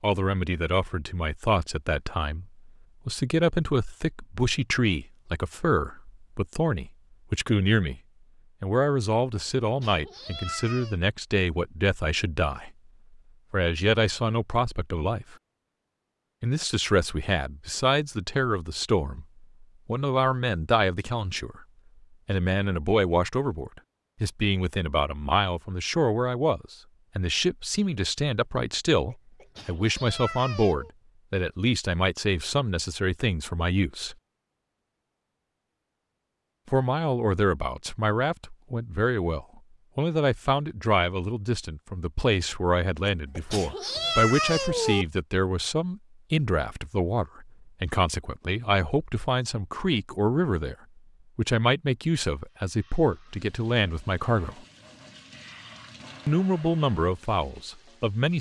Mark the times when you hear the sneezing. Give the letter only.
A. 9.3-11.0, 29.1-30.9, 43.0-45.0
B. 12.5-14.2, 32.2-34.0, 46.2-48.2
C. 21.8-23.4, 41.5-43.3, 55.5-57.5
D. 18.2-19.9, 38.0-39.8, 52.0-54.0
A.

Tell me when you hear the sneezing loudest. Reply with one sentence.
The loudest moment of the sneezing is at 44 seconds.